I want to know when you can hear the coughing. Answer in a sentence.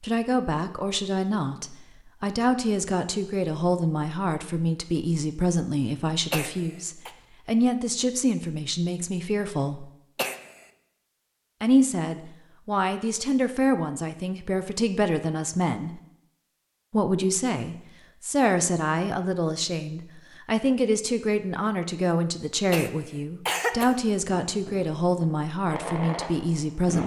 The coughing can be heard from 6.3 to 7.1 s, from 10.2 to 10.7 s and from 22.7 to 23.9 s.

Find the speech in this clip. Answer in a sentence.
The speech can be heard from 0.0 to 9.9 s, from 11.6 to 16.0 s and from 16.9 to 27.0 s.